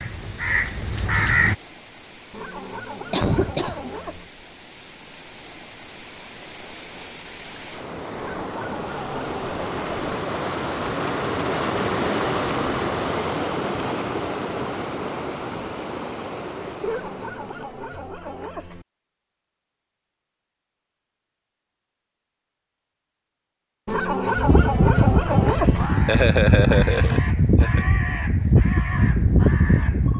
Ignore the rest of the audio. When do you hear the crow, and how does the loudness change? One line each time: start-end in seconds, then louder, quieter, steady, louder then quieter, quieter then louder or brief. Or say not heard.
0.0-1.6 brief
24.4-30.1 steady.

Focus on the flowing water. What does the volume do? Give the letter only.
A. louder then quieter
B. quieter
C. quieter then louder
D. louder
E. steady
A.